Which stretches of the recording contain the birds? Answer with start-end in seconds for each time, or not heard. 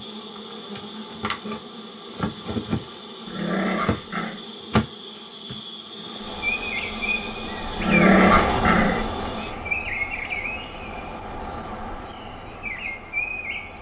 6.2-13.7.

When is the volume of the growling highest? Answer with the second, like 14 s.
8 s.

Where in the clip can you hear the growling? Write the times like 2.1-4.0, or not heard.
3.2-4.5, 7.8-9.1.